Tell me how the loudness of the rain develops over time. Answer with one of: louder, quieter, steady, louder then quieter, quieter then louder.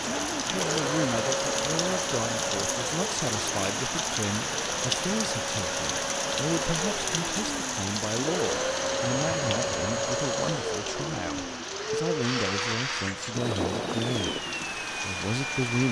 quieter.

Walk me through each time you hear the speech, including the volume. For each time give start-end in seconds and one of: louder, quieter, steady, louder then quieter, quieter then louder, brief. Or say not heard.
0.0-15.8 steady.